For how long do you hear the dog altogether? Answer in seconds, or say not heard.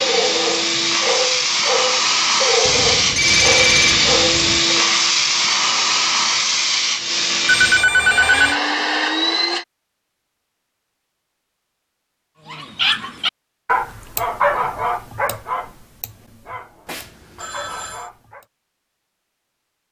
11 s.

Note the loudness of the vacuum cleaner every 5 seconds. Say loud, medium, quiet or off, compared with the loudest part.
loud, loud, off, off.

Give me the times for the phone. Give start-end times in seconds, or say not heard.
2.6-4.7, 7.5-8.6, 16.9-18.1.